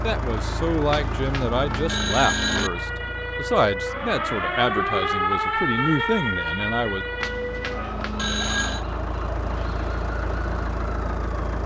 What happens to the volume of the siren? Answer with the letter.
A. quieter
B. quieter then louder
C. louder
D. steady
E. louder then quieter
E.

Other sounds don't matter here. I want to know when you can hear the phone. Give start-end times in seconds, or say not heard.
0.9-2.7, 7.2-8.8.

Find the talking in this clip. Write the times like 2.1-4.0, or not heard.
0.0-7.0.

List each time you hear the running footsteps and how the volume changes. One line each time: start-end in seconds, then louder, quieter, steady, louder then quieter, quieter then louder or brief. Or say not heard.
not heard.